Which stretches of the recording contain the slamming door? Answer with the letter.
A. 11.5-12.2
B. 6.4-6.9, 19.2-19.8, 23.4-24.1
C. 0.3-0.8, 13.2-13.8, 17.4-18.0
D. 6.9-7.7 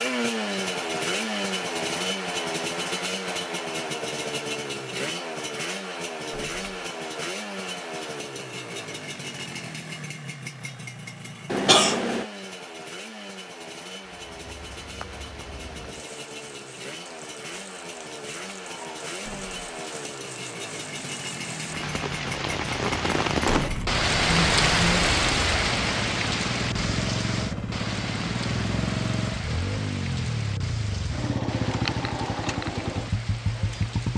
B.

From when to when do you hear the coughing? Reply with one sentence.
The coughing can be heard from 11.5 to 12.2 s.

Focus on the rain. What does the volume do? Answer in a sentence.
The loudness of the rain goes up, then down.